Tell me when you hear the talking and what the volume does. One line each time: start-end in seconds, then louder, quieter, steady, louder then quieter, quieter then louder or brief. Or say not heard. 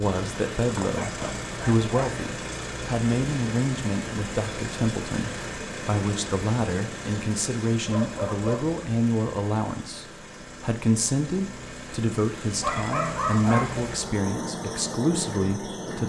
0.0-16.0 steady.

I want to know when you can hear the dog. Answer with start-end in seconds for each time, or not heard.
0.7-2.2, 7.8-8.8, 12.6-13.9.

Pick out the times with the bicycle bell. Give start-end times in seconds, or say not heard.
not heard.